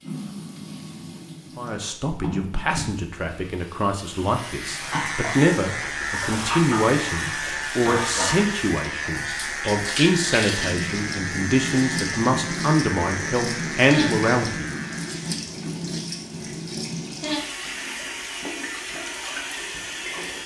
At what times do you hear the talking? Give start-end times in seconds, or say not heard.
1.6-14.7.